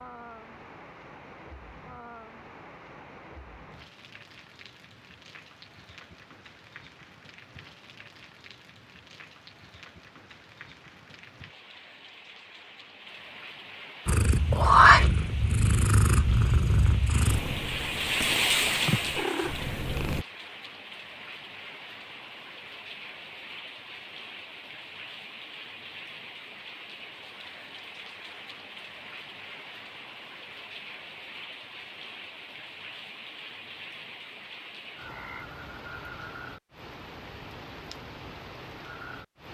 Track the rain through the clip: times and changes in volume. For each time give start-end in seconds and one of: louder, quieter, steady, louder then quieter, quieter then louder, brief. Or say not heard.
0.0-39.4 louder then quieter.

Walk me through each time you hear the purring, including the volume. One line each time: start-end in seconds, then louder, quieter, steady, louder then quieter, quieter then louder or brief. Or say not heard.
14.1-20.2 quieter then louder.